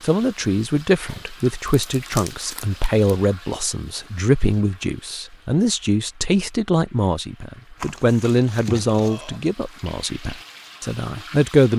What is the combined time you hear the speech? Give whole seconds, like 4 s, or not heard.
12 s.